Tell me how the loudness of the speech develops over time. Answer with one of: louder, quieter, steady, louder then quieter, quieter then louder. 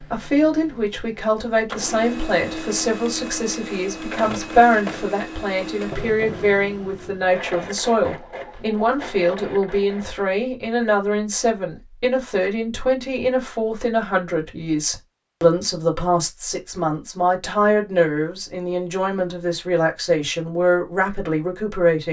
steady.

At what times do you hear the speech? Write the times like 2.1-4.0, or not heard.
0.0-22.0.